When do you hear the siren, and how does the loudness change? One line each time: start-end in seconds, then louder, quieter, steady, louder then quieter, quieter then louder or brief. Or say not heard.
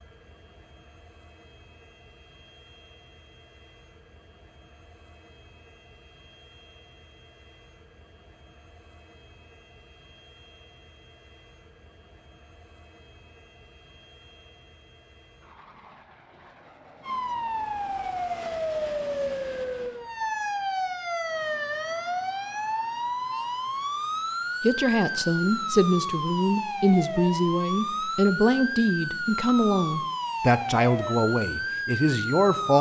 17.0-32.7 steady.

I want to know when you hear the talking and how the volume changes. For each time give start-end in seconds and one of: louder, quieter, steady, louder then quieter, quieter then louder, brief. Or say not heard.
24.6-32.7 steady.